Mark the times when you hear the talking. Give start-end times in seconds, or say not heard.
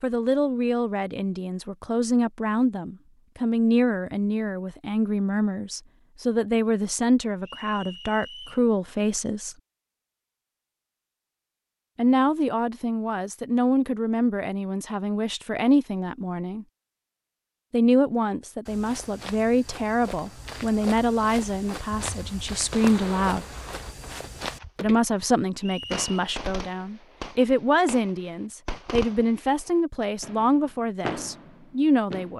0.0-9.6, 11.9-16.6, 17.7-23.4, 24.8-32.3.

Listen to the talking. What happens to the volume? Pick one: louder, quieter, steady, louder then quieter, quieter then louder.
steady.